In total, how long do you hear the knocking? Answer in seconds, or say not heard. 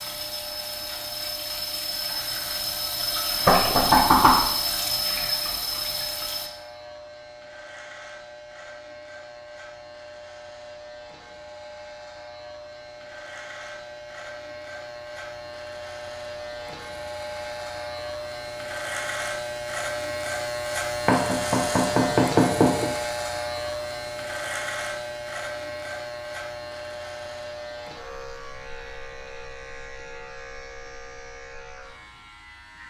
3 s.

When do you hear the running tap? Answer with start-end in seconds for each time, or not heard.
0.0-6.5.